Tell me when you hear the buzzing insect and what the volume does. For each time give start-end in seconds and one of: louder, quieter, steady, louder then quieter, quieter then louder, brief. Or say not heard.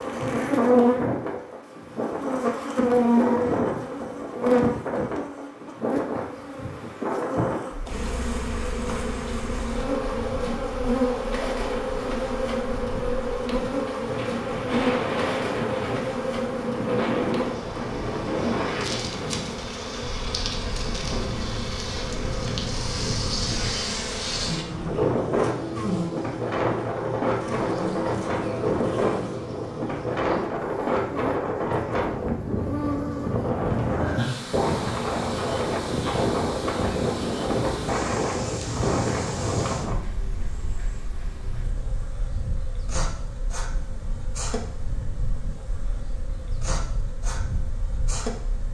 0.0-48.6 quieter.